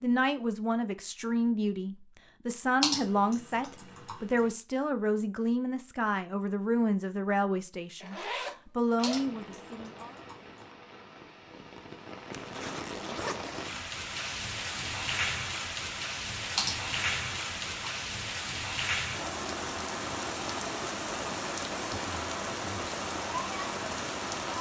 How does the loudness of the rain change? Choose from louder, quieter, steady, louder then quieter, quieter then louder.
louder.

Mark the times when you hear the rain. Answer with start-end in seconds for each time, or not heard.
8.8-24.5.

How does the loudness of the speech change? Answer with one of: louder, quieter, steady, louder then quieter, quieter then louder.
steady.